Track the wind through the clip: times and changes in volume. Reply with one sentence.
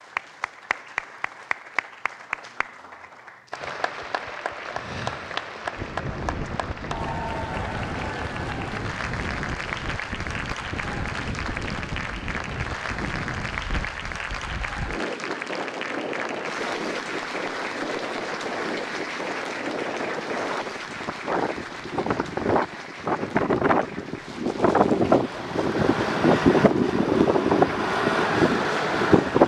The wind can be heard from 5.8 to 29.4 s, getting louder.